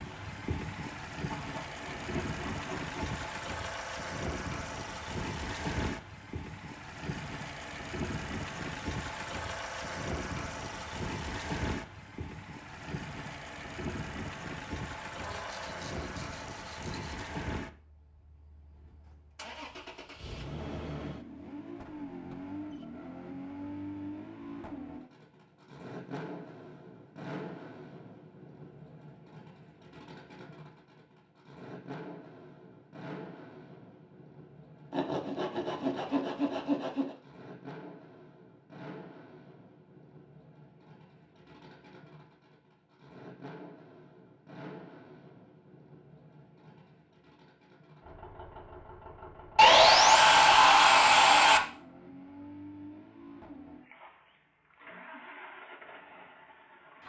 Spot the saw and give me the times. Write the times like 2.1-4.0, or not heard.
1.3-3.2, 15.2-17.2, 34.9-37.1, 49.5-51.6.